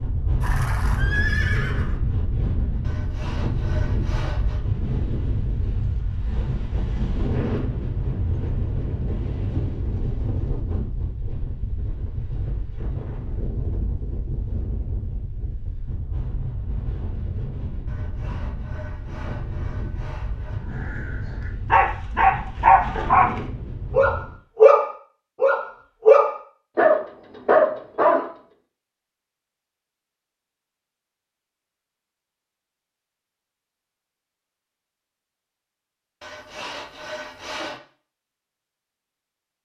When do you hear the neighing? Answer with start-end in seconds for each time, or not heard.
0.4-2.0.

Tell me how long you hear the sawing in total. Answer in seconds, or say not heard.
6 s.